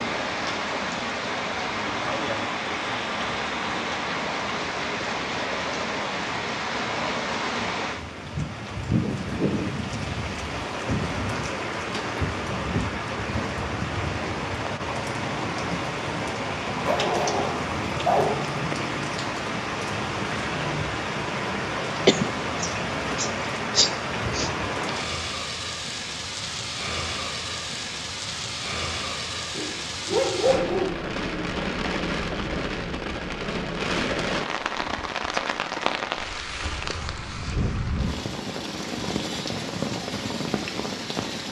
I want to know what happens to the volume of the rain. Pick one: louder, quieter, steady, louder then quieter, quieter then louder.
steady.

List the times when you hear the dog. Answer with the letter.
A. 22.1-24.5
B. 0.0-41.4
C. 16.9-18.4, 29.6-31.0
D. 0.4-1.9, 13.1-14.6
C.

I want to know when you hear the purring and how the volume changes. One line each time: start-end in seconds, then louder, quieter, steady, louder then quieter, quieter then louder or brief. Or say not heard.
not heard.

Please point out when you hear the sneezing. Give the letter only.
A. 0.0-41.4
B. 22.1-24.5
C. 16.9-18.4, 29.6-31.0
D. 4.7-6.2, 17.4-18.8
B.